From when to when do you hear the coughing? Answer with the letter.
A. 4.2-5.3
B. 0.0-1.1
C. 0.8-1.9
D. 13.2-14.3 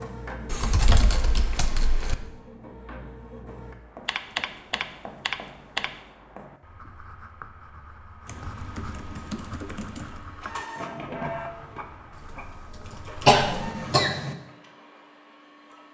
D.